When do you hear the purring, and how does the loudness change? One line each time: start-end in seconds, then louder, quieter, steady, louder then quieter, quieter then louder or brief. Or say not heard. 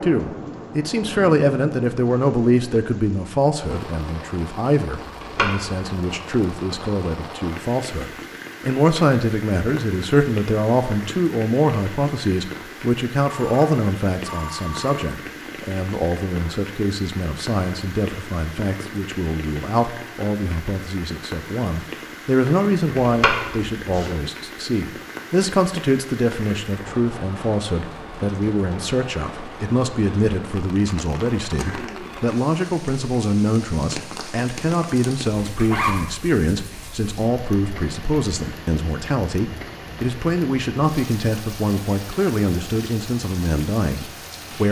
not heard.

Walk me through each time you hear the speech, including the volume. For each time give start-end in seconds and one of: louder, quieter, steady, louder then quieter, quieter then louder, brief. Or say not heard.
0.0-44.6 steady.